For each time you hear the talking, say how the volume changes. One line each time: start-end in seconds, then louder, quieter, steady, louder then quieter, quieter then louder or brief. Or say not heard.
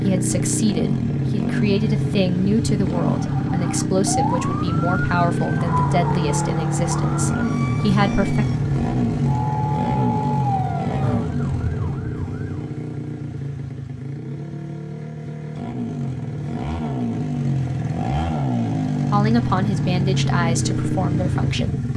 0.0-8.4 steady
19.1-21.9 brief.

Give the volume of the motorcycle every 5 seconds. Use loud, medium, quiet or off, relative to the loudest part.
loud, loud, medium, loud, loud.